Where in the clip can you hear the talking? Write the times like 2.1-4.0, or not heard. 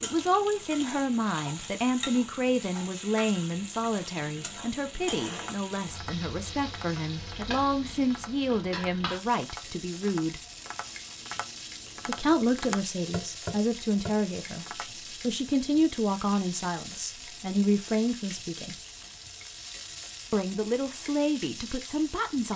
0.0-10.4, 12.1-18.8, 20.3-22.5.